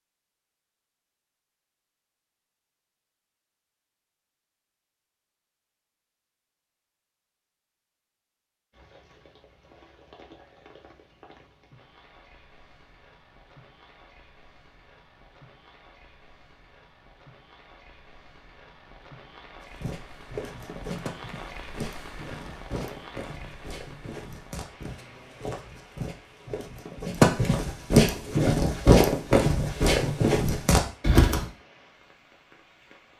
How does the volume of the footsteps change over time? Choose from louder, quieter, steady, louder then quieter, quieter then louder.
louder.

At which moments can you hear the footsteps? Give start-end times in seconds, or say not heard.
19.6-31.4.